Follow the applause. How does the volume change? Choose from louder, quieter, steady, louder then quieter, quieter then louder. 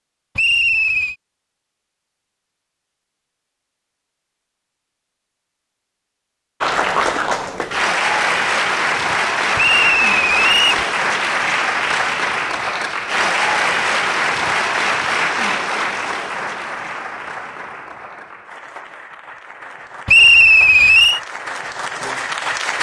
quieter.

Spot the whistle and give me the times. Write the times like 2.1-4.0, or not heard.
0.3-1.1, 9.6-10.8, 20.1-21.2.